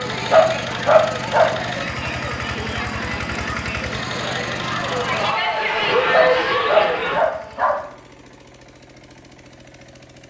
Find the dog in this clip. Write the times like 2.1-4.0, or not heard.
0.1-1.5, 6.0-7.8.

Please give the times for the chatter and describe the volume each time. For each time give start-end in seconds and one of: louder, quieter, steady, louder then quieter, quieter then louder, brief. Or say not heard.
0.0-7.2 louder.